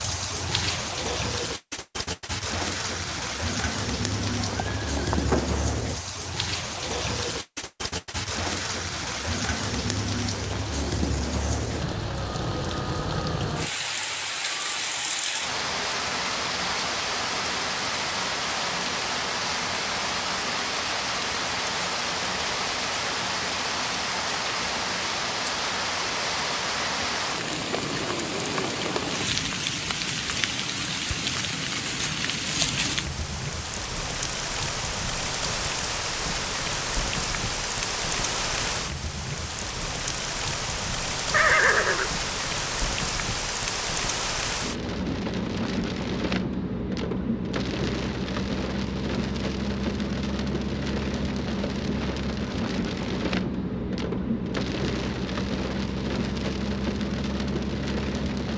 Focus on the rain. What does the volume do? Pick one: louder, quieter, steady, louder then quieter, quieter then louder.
steady.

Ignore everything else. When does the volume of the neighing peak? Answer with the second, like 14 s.
42 s.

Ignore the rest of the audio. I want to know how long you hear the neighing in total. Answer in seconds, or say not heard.
2 s.